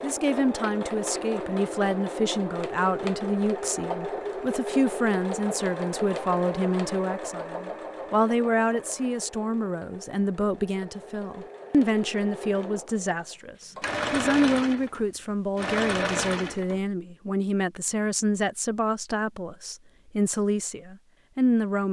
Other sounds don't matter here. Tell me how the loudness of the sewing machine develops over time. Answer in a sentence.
The volume of the sewing machine goes down, then up.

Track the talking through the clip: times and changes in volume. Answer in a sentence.
The talking can be heard from 0.0 to 21.8 s, at a steady volume.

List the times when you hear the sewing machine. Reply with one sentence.
You can hear the sewing machine from 0.0 to 16.8 s.